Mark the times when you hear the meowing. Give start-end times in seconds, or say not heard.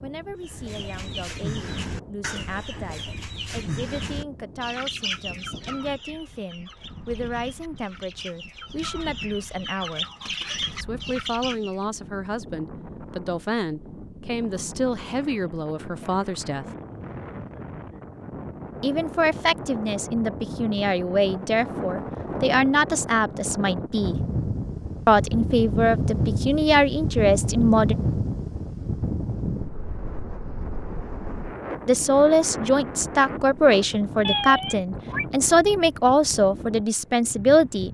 34.2-35.2.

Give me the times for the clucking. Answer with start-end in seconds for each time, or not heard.
0.4-11.8.